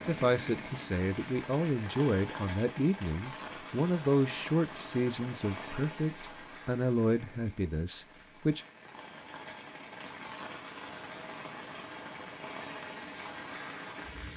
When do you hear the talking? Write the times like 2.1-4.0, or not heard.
0.1-8.7.